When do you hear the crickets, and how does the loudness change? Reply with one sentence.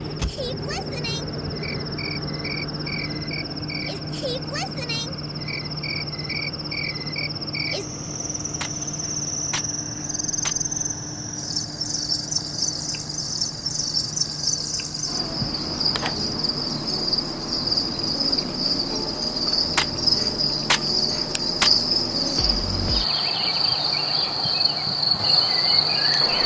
You can hear the crickets from 0.0 to 26.4 s, getting louder.